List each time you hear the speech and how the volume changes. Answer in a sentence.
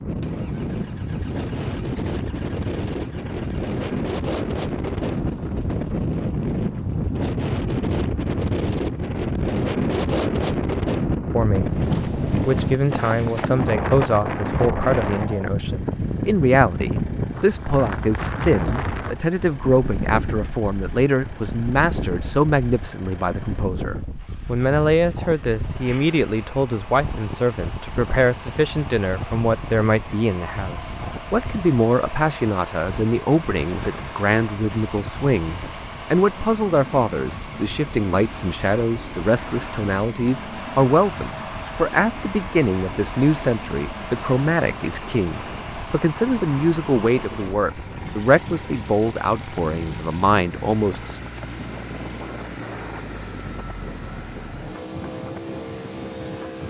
The speech can be heard from 11.3 to 51.2 s, at a steady volume.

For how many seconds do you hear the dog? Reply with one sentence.
You can't hear the dog here.